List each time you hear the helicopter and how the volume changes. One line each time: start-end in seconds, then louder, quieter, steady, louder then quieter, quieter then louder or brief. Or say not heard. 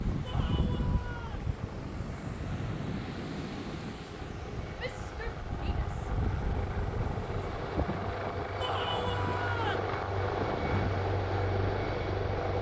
0.0-12.5 louder.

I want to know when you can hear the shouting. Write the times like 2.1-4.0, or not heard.
0.2-1.4, 4.8-6.0, 8.6-9.8.